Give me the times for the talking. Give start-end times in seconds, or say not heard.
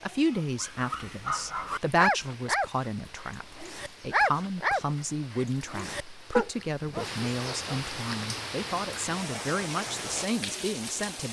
0.0-11.2.